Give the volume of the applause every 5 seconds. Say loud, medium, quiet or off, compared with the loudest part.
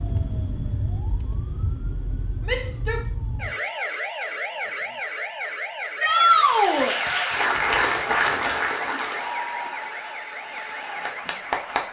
off, loud, medium.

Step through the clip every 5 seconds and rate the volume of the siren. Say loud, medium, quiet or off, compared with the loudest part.
loud, loud, medium.